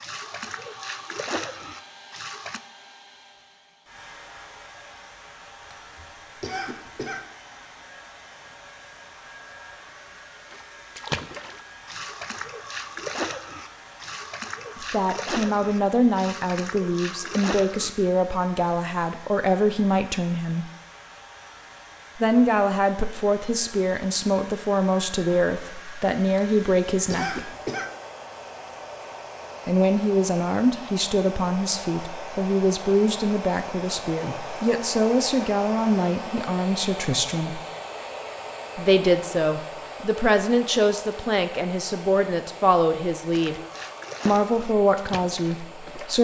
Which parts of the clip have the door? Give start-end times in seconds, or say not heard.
not heard.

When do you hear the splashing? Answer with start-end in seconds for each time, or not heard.
0.0-2.6, 10.5-17.9, 43.3-46.1.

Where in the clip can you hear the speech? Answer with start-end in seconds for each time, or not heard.
14.8-20.6, 22.1-27.5, 29.6-37.6, 38.8-43.6, 44.2-46.1.